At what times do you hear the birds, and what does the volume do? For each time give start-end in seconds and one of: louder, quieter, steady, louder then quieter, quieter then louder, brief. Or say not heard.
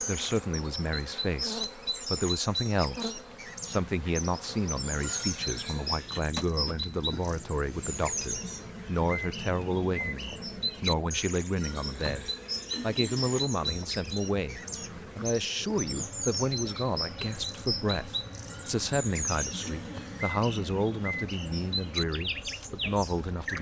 0.0-23.5 steady.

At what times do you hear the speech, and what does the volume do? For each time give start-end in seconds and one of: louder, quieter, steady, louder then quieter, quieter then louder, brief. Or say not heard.
0.0-23.5 steady.